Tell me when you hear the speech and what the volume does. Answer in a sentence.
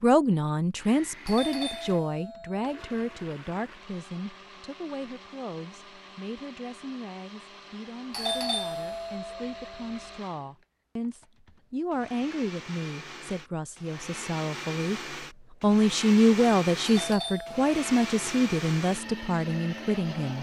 The speech can be heard from 0.0 to 15.0 s, getting quieter then louder; and from 15.6 to 20.3 s, getting quieter.